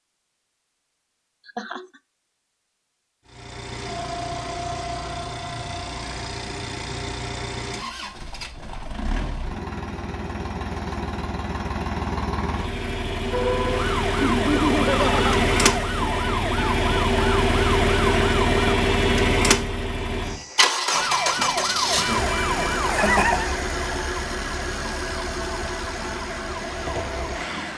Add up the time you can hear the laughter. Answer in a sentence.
The laughter can be heard for 2 seconds in total.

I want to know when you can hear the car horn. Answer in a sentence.
You can't hear the car horn here.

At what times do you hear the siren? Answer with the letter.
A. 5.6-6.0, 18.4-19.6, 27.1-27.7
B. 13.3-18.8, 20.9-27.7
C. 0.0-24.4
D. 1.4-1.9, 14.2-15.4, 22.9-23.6
B.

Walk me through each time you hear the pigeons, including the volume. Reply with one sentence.
You can't hear the pigeons here.